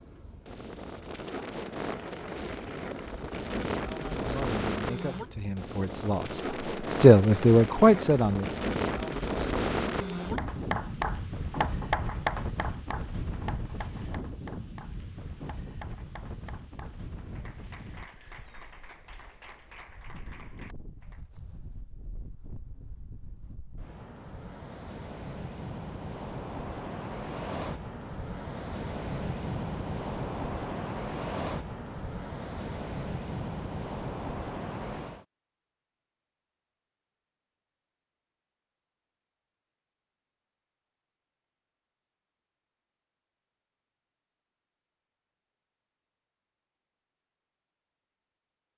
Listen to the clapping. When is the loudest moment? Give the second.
12 s.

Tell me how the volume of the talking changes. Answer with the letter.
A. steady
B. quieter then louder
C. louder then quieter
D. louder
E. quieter
D.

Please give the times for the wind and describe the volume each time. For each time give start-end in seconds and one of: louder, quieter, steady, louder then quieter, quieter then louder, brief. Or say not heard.
0.0-35.2 quieter then louder.